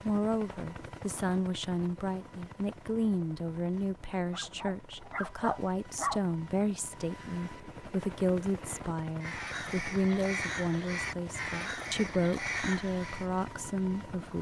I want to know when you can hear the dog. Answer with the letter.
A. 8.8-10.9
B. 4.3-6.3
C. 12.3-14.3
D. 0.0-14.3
B.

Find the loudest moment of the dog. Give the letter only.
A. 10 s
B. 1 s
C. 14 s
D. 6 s
D.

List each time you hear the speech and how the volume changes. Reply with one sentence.
The speech can be heard from 0.0 to 14.3 s, at a steady volume.